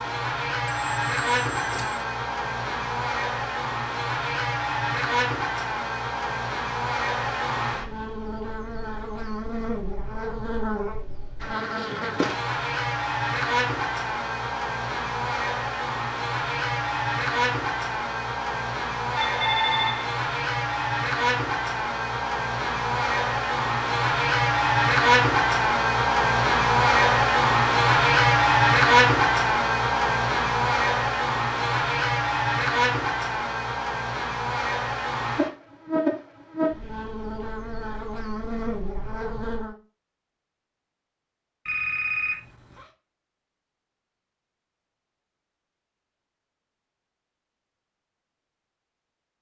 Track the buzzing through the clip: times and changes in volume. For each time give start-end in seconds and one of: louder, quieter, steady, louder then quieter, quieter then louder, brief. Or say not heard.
0.0-39.8 louder then quieter.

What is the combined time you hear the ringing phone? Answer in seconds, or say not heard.
4 s.